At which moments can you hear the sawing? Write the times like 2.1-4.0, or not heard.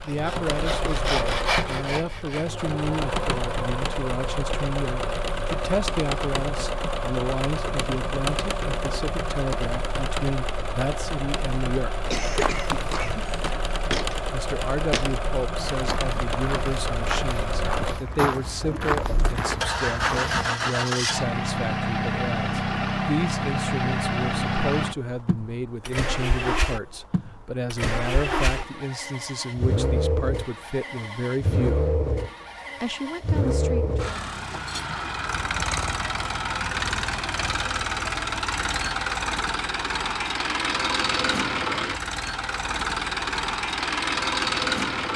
0.0-2.6.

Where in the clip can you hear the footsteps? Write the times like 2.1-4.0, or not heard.
12.2-20.5.